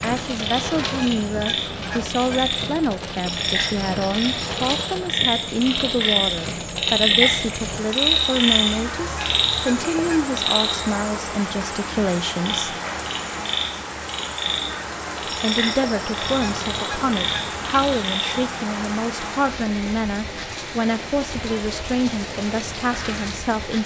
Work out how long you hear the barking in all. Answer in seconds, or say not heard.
not heard.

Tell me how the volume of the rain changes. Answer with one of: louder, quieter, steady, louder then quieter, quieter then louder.
steady.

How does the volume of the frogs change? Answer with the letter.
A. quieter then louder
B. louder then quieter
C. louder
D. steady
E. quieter
B.